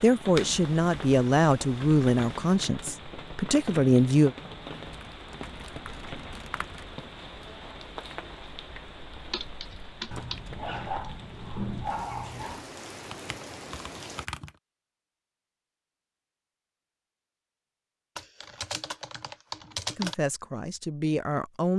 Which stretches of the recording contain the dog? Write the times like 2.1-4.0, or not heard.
10.1-12.7.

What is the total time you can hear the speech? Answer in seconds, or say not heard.
6 s.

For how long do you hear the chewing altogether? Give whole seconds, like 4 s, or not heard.
not heard.